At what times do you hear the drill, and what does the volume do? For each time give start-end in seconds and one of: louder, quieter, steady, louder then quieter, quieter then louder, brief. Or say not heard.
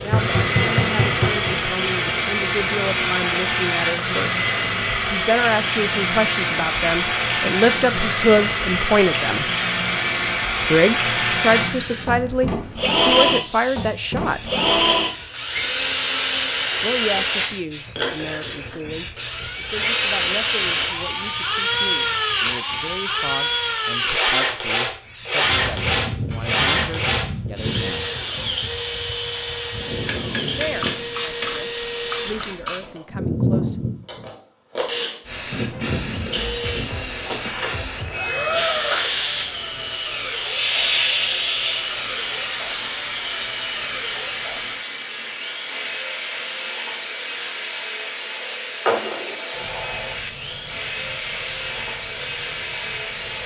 0.0-53.4 quieter.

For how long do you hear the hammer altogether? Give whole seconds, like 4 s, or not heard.
3 s.